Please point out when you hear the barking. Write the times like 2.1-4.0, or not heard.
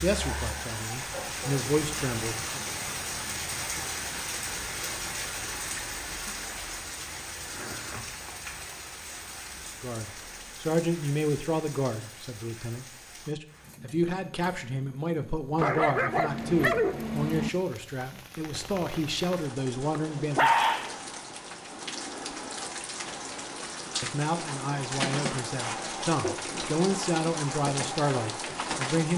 0.1-1.5, 15.6-17.5, 19.9-21.0.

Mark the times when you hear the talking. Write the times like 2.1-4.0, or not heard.
0.0-2.6, 9.8-20.5, 24.0-29.1.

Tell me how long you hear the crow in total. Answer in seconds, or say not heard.
not heard.